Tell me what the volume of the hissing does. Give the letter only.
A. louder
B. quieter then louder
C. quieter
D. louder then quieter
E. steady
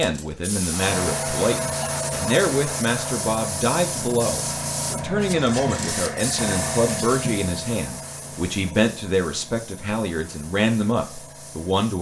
C.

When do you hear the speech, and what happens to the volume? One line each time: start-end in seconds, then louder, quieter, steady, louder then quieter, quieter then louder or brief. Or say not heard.
0.0-11.9 steady.